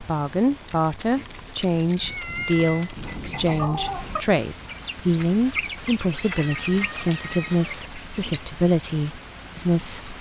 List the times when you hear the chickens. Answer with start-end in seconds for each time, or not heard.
2.9-8.4.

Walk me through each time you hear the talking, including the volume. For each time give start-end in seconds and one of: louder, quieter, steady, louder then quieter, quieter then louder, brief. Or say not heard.
0.0-10.1 steady.